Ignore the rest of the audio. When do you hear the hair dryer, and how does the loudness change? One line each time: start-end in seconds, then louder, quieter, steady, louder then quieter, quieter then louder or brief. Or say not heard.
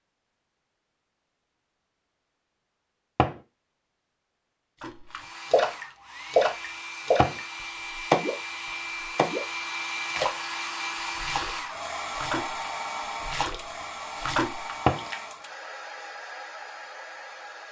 5.0-17.6 louder then quieter.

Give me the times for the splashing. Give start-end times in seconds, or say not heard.
4.8-8.3, 9.0-9.4, 10.1-15.2.